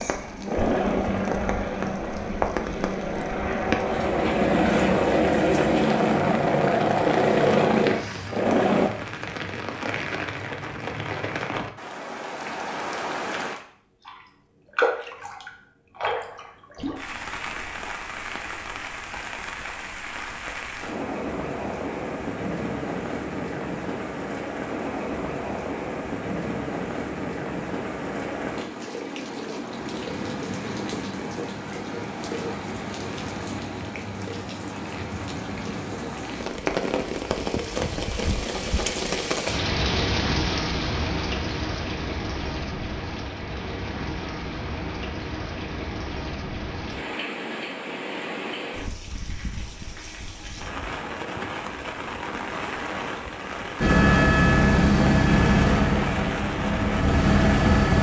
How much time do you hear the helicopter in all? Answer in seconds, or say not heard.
13 s.